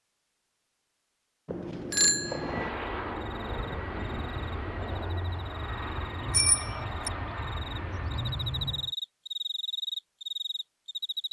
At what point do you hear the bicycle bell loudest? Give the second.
2 s.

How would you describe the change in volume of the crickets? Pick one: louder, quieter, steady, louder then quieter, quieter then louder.
louder.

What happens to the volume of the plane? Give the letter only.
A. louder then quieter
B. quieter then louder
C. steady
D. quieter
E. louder
C.